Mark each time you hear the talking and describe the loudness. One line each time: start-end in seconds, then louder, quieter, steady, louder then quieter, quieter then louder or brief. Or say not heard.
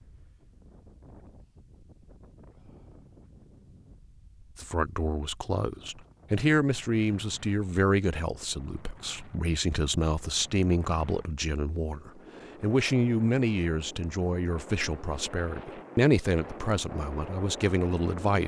4.5-18.4 steady.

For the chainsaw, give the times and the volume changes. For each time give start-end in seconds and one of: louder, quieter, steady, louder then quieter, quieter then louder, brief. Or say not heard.
not heard.